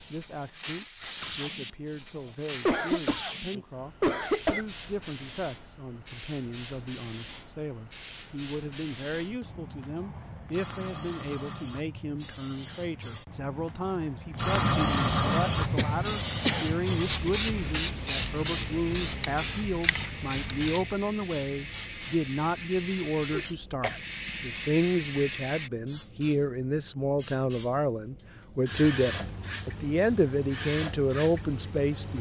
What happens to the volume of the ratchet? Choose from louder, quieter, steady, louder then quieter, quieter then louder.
louder.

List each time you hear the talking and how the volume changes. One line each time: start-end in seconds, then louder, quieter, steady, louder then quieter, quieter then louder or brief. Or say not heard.
0.0-32.1 louder.